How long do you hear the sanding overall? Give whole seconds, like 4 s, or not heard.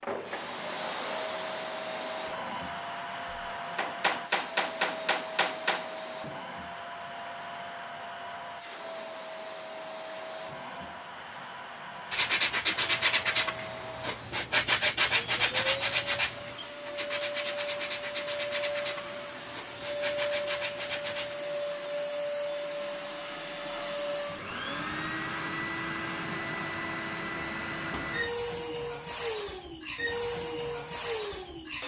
9 s.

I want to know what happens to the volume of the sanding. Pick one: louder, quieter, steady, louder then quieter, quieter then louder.
quieter.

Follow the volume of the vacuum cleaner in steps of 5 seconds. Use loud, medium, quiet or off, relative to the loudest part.
loud, medium, medium, loud, loud, loud, loud.